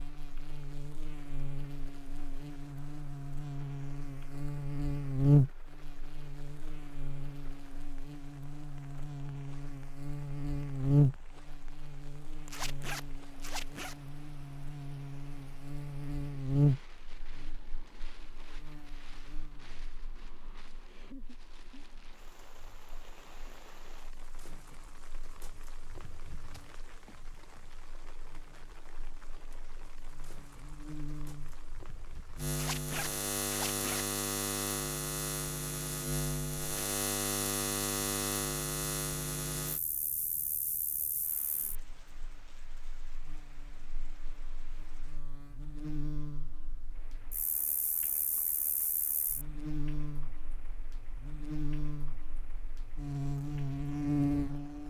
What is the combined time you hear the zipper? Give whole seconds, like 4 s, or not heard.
3 s.